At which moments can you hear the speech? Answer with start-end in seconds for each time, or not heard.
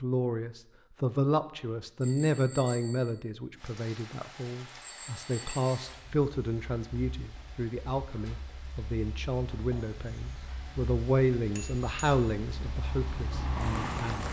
0.0-14.2.